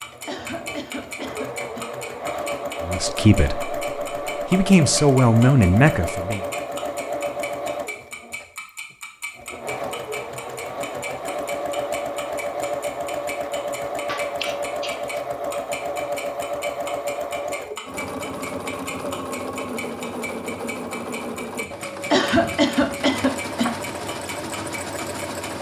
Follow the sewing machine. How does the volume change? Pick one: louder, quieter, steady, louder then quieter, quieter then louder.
steady.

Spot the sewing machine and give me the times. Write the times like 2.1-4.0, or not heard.
0.0-25.5.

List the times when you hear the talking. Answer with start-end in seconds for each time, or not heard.
2.8-6.4.